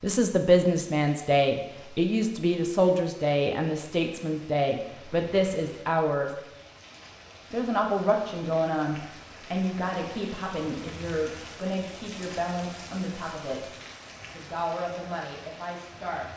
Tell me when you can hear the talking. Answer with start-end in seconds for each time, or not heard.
0.0-6.3, 7.5-13.6, 14.3-16.3.